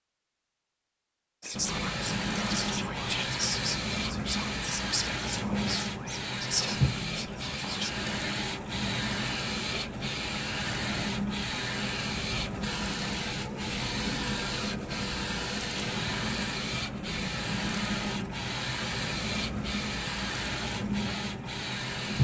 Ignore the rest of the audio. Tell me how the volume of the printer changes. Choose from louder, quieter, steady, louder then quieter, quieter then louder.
steady.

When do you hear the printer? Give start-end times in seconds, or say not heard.
1.5-22.1.